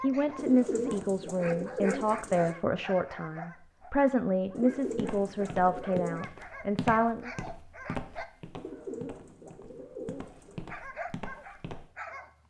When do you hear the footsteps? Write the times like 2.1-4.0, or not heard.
4.8-11.9.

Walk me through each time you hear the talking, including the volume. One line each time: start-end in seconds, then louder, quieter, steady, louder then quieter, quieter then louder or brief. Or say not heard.
0.0-7.3 steady.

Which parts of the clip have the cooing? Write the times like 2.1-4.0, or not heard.
0.3-2.5, 4.5-6.2, 8.6-10.7.